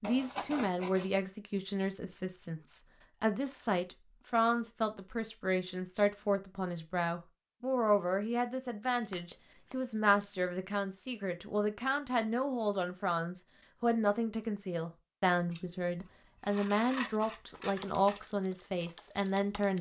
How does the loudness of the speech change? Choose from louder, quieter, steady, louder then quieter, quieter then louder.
steady.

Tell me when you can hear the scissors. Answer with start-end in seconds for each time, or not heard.
0.0-1.1, 9.0-10.3, 15.5-18.2.